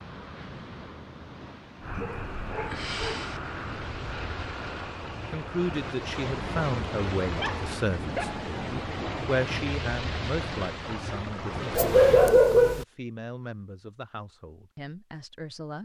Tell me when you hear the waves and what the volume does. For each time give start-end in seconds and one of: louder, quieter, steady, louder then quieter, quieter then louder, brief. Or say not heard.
0.0-12.4 louder.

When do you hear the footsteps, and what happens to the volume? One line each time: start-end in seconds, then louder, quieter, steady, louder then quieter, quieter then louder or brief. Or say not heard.
not heard.